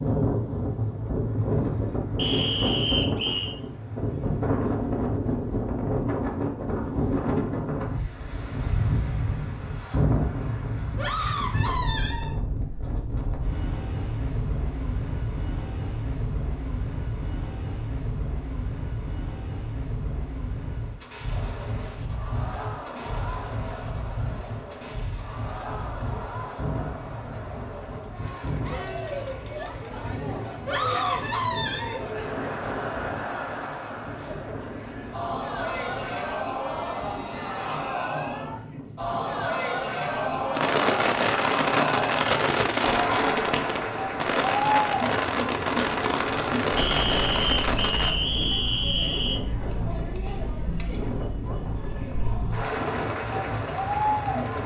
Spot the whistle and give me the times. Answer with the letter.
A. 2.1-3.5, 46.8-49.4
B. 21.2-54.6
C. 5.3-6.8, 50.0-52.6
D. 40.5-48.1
A.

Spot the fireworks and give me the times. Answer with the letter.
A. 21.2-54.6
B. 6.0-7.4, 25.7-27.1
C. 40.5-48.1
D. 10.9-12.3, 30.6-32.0
C.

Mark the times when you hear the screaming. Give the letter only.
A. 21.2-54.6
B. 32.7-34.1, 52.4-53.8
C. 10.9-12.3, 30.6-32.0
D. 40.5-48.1
C.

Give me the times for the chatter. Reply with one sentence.
The chatter can be heard from 21.2 to 54.6 s.